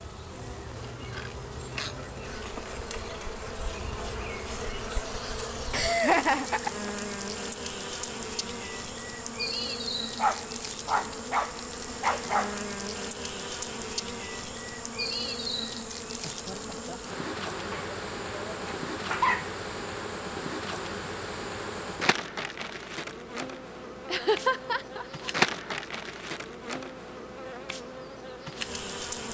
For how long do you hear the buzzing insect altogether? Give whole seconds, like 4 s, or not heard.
29 s.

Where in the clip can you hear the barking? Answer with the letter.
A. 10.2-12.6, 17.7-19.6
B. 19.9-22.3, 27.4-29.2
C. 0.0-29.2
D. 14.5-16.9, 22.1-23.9
A.